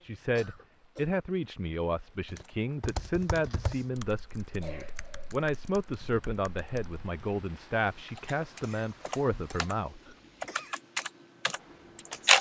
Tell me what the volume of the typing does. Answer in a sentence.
The loudness of the typing goes down, then up.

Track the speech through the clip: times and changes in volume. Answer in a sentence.
The speech can be heard from 0.0 to 10.0 s, at a steady volume.